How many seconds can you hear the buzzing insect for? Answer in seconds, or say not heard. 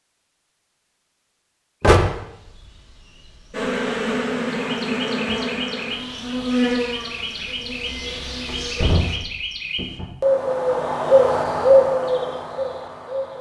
6 s.